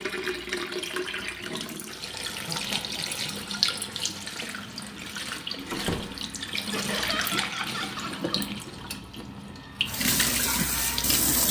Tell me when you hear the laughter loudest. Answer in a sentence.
The volume of the laughter peaks at 7 seconds.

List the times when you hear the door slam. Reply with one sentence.
The door slam can be heard from 5.7 to 6.2 s.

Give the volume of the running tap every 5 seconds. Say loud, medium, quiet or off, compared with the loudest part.
medium, medium, loud.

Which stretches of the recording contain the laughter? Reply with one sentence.
You can hear the laughter from 2.4 to 3.2 s and from 6.7 to 8.4 s.